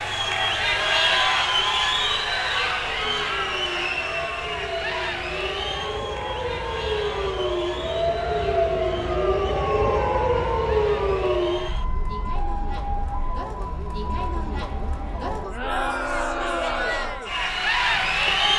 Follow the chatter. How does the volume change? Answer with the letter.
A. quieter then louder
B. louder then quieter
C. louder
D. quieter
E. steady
A.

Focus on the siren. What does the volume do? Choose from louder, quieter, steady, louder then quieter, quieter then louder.
louder then quieter.